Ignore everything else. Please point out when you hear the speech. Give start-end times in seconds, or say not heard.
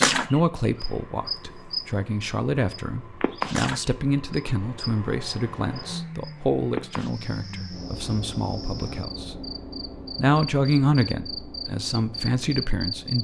0.1-9.4, 10.2-13.1.